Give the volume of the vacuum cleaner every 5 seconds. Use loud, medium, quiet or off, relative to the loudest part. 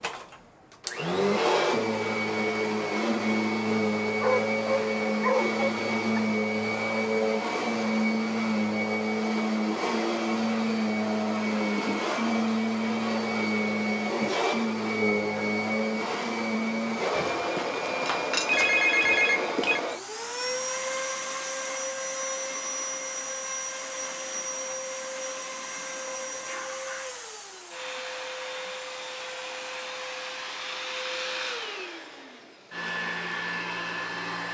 loud, loud, loud, loud, medium, medium, medium.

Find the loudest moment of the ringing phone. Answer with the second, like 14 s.
19 s.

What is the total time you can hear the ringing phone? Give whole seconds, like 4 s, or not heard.
3 s.